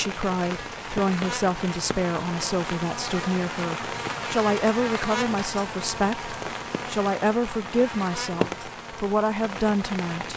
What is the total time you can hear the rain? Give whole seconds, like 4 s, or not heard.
10 s.